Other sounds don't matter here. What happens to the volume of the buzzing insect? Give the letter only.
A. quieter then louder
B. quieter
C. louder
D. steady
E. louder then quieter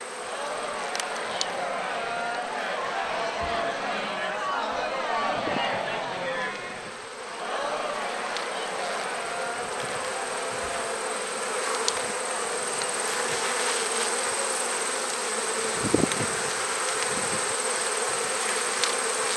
C.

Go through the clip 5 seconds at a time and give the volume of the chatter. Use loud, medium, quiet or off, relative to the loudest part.
loud, loud, medium, off.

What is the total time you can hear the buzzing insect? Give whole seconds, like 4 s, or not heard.
19 s.